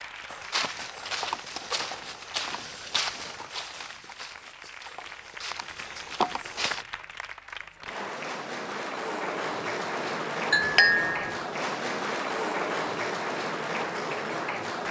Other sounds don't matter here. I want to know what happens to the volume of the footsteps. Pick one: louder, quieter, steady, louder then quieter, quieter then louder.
quieter then louder.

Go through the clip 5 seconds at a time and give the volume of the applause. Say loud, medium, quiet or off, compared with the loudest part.
quiet, medium, loud.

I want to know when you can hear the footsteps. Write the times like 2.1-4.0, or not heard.
0.2-6.8.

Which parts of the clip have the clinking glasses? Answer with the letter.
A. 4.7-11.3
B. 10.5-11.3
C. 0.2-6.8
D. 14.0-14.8
B.